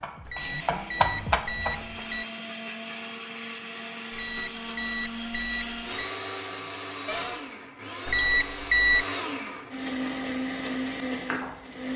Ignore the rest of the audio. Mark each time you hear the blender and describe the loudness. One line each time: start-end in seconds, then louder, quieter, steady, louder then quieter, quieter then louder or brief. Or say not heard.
0.3-11.9 louder.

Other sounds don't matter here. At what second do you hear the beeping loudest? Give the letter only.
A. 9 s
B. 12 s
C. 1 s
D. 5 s
A.